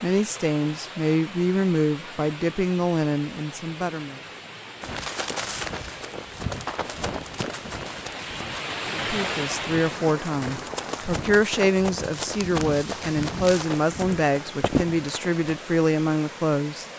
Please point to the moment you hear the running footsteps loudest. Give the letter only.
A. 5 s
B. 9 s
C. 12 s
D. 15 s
D.